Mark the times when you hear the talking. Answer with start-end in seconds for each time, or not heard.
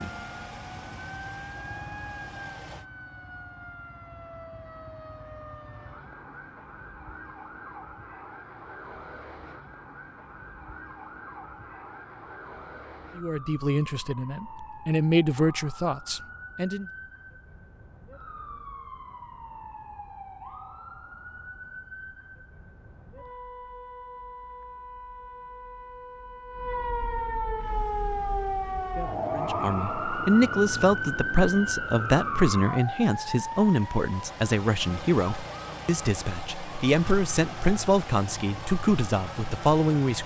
13.2-16.9, 29.4-40.2.